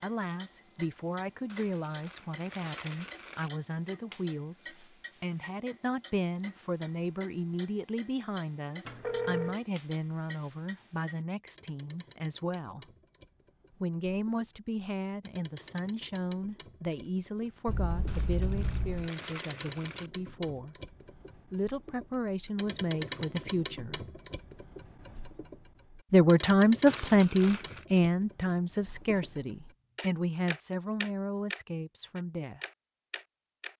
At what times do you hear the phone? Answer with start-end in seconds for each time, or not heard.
8.8-9.6, 17.6-19.1.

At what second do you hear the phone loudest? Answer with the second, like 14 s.
9 s.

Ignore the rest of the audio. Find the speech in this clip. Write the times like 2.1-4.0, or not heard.
0.0-12.8, 13.8-20.8, 21.5-23.9, 26.1-32.6.